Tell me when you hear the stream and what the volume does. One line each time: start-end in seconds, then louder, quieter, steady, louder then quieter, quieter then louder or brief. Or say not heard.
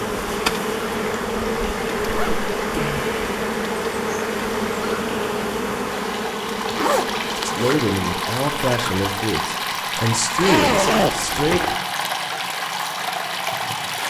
0.0-14.0 louder.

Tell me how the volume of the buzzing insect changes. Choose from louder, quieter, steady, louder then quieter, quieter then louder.
quieter.